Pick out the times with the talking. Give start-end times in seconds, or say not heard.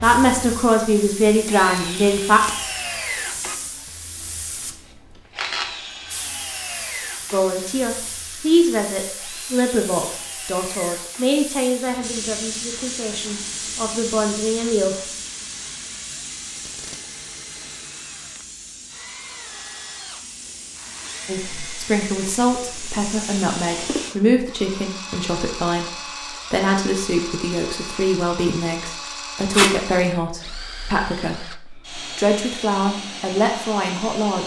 0.0-2.4, 7.3-14.9, 21.2-34.4.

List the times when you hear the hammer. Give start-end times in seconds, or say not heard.
not heard.